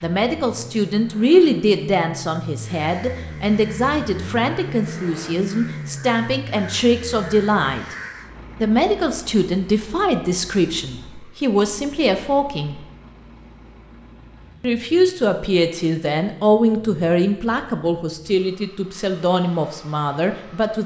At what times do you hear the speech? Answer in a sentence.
The speech can be heard from 0.0 to 8.0 s, from 8.6 to 12.8 s and from 14.6 to 20.8 s.